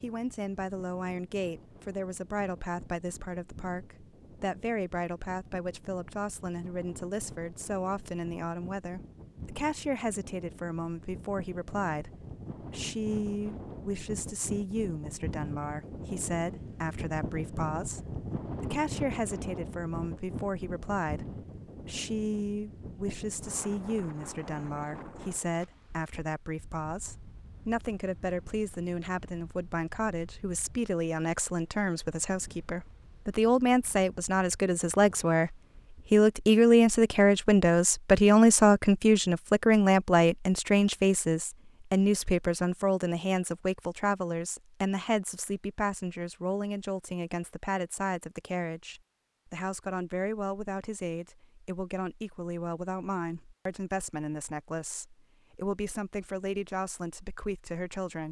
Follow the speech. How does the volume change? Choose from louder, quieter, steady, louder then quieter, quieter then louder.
louder then quieter.